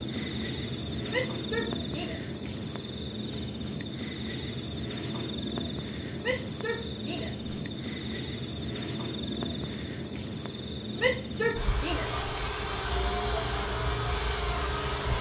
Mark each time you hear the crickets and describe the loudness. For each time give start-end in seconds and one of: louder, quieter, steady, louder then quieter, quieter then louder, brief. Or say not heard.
0.0-15.1 steady.